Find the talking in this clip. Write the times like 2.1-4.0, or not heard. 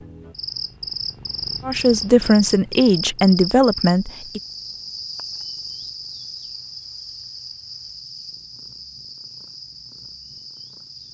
1.6-4.4.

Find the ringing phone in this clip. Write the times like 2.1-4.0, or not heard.
not heard.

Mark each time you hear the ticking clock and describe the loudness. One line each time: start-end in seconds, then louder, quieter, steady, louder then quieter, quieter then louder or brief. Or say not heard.
not heard.